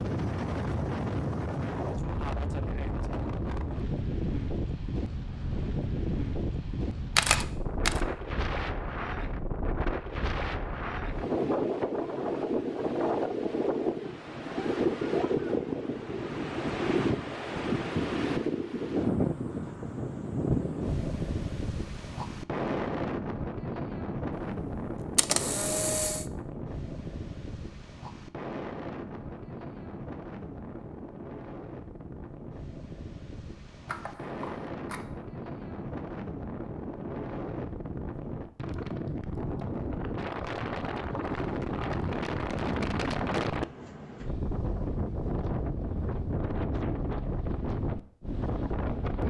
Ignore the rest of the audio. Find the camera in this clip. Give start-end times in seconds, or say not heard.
7.2-8.0, 25.1-26.2, 33.9-35.0.